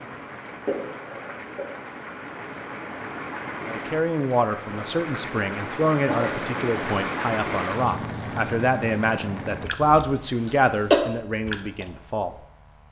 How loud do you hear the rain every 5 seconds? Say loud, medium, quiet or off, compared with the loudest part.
medium, loud, medium.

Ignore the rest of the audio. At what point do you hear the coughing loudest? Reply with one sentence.
The volume of the coughing peaks at 11 seconds.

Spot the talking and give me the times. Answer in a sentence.
The talking can be heard from 3.6 to 12.3 s.